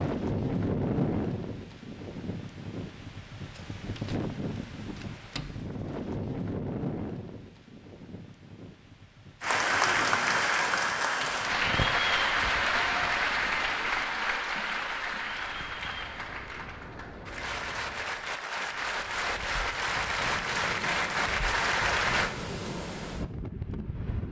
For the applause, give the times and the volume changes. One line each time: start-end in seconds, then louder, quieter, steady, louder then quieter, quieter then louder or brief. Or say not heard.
9.4-22.3 quieter then louder.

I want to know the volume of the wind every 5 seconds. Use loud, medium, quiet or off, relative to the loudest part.
loud, medium, quiet, quiet, medium.